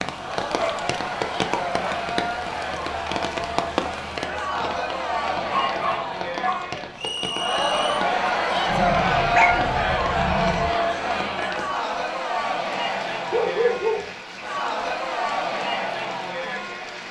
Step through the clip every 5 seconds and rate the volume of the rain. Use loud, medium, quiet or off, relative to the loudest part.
loud, medium, medium, medium.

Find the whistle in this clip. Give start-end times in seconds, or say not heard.
7.0-8.0.